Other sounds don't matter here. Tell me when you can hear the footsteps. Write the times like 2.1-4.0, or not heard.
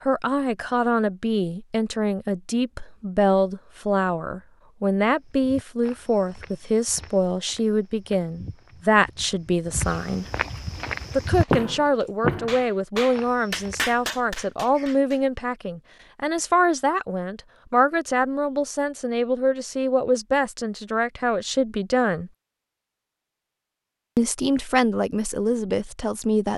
5.2-14.0.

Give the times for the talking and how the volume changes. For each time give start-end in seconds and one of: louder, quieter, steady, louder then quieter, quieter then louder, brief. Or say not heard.
0.0-10.2 steady
11.2-22.3 steady
24.1-26.5 brief.